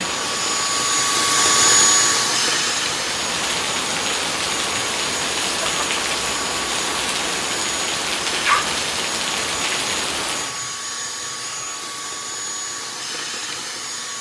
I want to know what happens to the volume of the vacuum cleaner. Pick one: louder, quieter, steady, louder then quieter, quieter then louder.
quieter.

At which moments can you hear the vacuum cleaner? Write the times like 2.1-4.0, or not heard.
0.0-14.1.